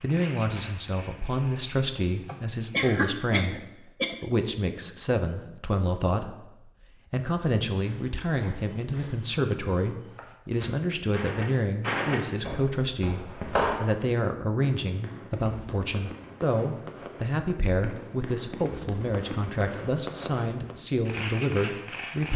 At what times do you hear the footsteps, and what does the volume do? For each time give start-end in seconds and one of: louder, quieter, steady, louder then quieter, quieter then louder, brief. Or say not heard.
7.8-13.8 louder then quieter.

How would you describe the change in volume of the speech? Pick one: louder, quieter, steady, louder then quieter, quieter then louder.
steady.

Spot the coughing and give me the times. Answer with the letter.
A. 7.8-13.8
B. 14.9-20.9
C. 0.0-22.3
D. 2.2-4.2
D.